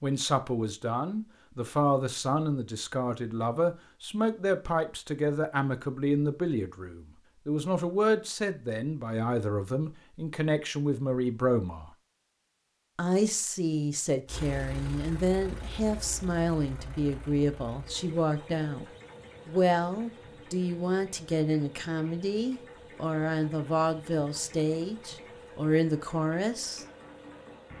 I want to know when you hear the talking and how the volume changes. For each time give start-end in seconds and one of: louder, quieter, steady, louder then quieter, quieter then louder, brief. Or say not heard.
0.0-11.9 steady
12.9-26.9 steady.